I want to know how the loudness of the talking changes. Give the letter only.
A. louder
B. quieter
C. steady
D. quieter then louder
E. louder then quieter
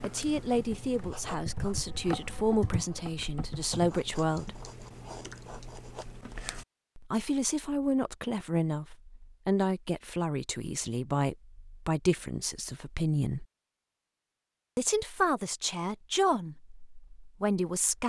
C.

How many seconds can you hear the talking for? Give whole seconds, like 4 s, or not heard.
14 s.